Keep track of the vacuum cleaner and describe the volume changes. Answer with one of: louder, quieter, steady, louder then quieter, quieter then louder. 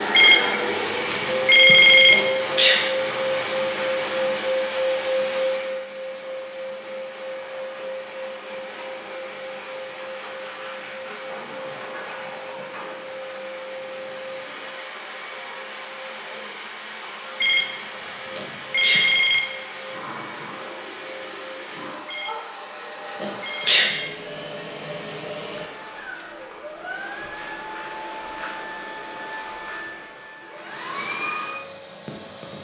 quieter.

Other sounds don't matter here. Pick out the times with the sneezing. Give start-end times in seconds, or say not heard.
2.1-2.8, 18.4-19.1, 23.2-23.9.